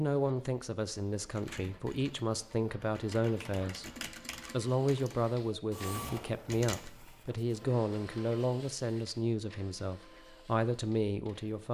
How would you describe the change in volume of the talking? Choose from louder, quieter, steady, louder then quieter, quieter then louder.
steady.